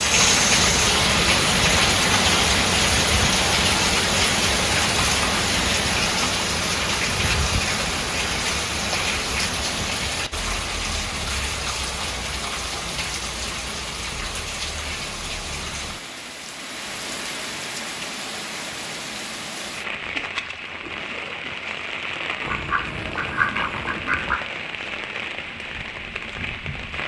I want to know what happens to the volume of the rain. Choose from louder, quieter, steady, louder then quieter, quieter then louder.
quieter.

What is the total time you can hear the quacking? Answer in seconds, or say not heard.
2 s.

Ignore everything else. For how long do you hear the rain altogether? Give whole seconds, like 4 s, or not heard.
27 s.